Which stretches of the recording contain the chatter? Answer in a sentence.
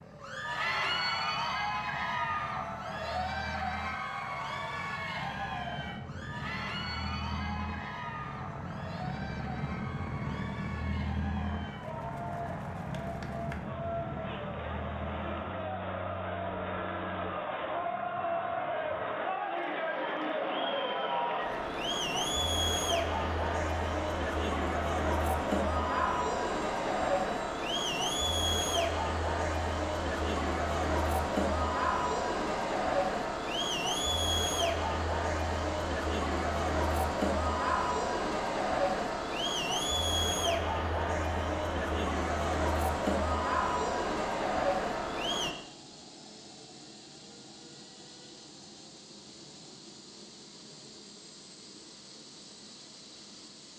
You can hear the chatter from 0.1 to 45.5 s.